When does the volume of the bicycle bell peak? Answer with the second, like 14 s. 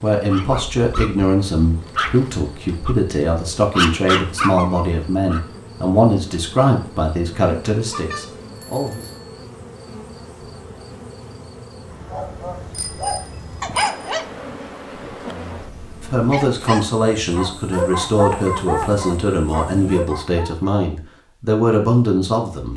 8 s.